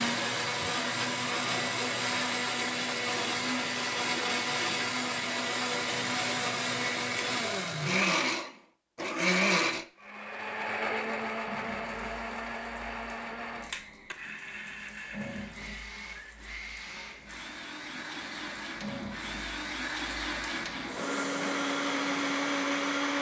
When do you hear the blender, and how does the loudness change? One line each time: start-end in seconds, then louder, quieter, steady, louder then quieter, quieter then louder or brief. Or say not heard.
0.0-23.1 quieter then louder.